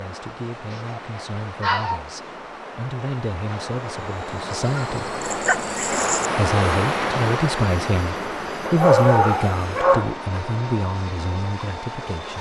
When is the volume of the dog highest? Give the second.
9 s.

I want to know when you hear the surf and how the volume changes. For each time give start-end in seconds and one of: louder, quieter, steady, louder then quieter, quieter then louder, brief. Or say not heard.
0.0-12.2 louder then quieter.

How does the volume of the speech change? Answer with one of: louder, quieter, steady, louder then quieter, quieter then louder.
louder then quieter.